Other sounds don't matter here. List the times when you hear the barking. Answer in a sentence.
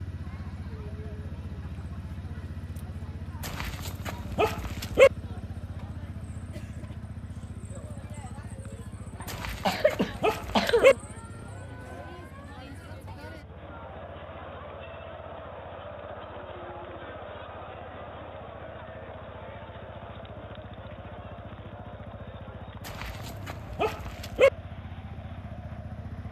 You can hear the barking from 3.4 to 5.1 s, from 9.2 to 10.9 s and from 22.9 to 24.5 s.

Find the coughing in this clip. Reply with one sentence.
You can hear the coughing from 9.2 to 11.0 s.